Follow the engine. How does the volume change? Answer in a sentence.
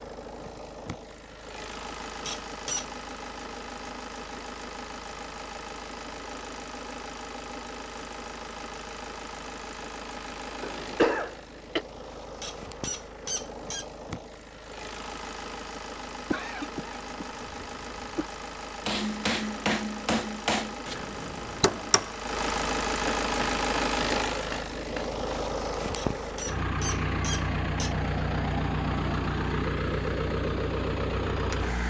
The loudness of the engine goes up.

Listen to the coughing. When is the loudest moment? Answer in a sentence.
The loudest moment of the coughing is at 11 seconds.